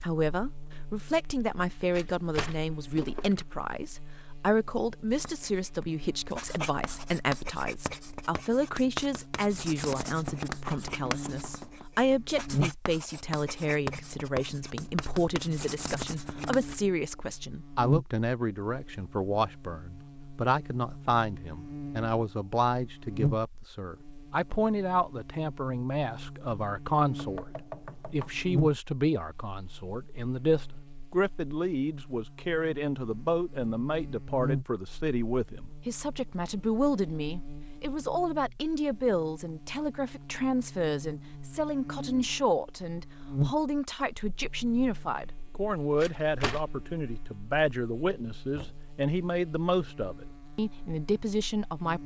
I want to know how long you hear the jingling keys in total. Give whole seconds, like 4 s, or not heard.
2 s.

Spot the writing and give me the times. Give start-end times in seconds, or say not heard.
5.2-16.8.